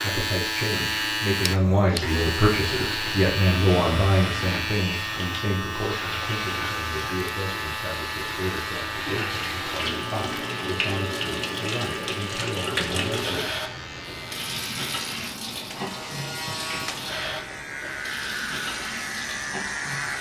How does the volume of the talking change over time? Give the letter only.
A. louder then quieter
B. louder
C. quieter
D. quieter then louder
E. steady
C.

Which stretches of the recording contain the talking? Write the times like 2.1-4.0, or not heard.
0.0-13.3.